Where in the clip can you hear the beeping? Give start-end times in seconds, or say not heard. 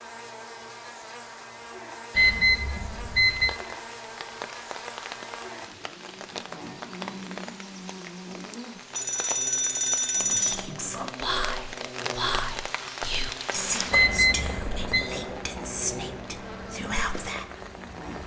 2.1-3.5, 8.9-10.6, 13.9-15.1.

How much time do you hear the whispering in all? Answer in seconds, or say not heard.
7 s.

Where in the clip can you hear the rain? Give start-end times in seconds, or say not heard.
3.2-18.2.